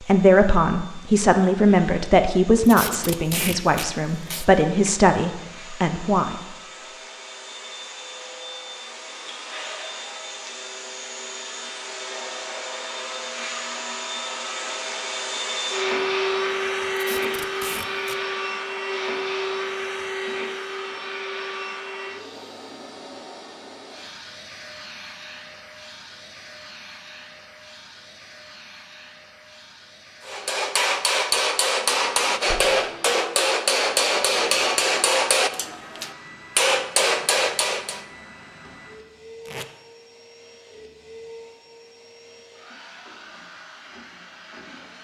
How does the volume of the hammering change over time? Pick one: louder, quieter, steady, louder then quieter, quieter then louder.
steady.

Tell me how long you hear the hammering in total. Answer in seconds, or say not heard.
8 s.